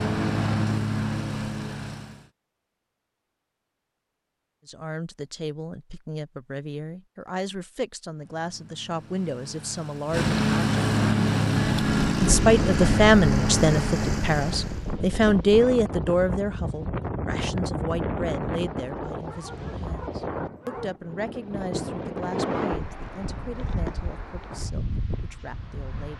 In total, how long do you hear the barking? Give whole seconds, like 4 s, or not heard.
2 s.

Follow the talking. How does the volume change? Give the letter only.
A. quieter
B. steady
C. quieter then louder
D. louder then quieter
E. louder
D.